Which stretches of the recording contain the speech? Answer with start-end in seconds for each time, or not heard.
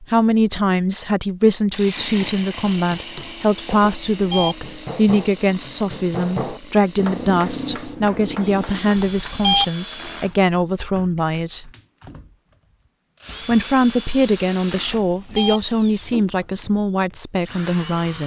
0.0-11.7, 13.4-18.2.